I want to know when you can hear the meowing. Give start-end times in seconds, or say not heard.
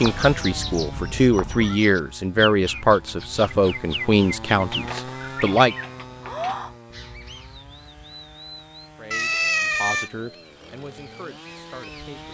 0.2-1.8, 4.7-6.5, 9.1-10.1.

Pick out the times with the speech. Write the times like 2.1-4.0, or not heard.
0.0-5.8, 8.9-12.2.